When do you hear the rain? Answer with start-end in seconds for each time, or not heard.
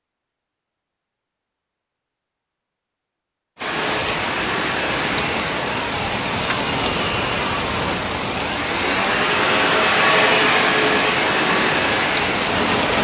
3.5-12.9.